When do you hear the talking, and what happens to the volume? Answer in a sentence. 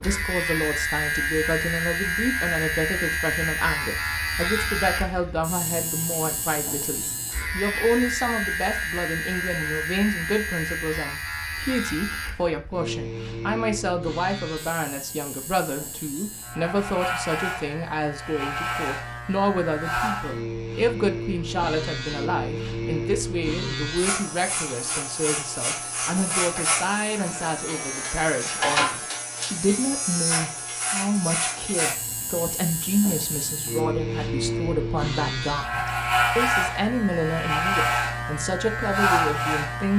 You can hear the talking from 0.0 to 39.9 s, at a steady volume.